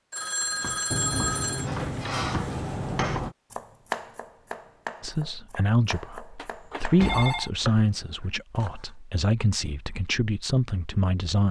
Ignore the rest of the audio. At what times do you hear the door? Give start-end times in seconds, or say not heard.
0.9-3.4, 7.0-8.1.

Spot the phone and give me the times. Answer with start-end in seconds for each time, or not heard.
0.1-1.7, 6.3-7.5.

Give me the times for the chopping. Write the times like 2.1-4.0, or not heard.
0.4-8.9.